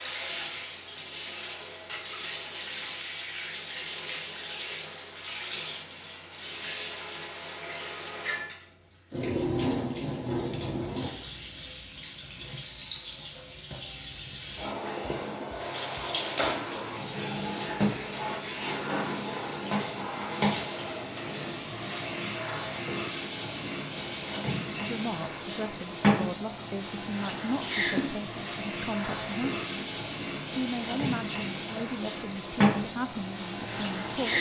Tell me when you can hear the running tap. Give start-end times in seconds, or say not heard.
0.0-34.3.